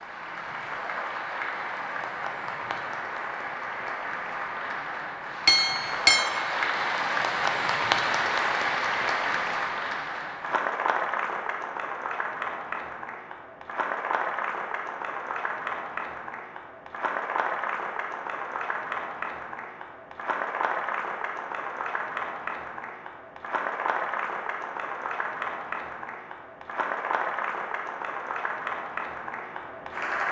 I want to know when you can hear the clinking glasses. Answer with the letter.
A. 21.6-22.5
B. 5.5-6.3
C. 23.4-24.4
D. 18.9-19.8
B.